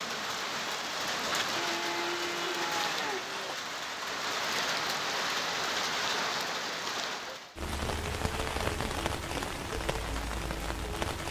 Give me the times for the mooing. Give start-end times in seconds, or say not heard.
1.6-3.5.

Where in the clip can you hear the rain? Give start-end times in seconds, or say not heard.
0.0-11.2.